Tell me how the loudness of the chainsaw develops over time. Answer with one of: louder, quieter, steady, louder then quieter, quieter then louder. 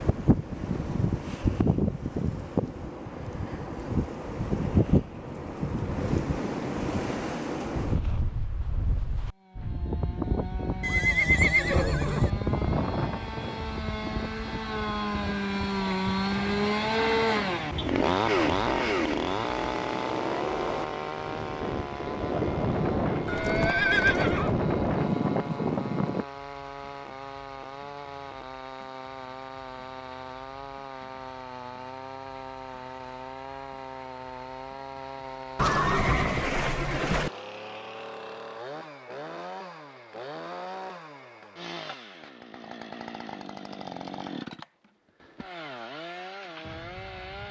quieter.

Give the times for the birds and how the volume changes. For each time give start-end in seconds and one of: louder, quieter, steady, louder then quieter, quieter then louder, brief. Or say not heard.
not heard.